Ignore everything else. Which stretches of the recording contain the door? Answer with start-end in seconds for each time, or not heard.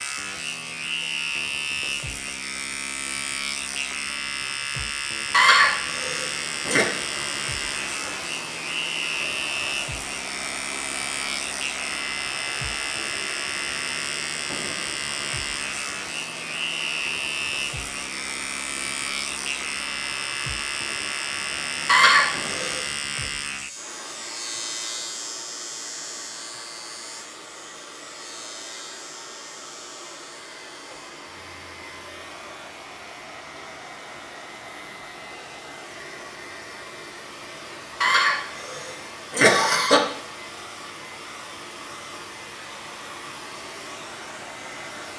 not heard.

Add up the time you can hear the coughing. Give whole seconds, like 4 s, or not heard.
5 s.